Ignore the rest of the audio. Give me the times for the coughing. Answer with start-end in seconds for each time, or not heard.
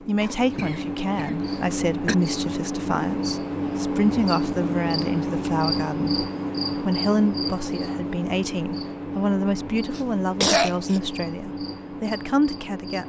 0.2-2.1, 9.9-11.0.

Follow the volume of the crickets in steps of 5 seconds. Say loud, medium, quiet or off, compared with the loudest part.
loud, loud, medium.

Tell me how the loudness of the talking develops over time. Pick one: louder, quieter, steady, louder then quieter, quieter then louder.
steady.